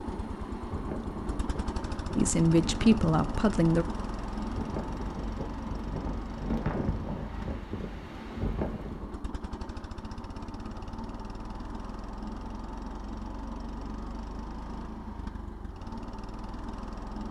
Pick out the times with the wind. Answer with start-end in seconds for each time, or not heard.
0.0-9.2.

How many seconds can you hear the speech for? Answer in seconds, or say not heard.
2 s.